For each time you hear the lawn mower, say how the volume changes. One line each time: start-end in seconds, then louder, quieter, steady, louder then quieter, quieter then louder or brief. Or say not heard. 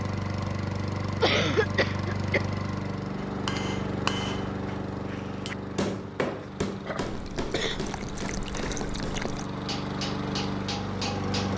0.0-11.5 quieter then louder.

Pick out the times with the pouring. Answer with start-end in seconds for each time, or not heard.
7.0-9.4.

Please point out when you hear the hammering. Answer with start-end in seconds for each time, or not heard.
3.2-11.5.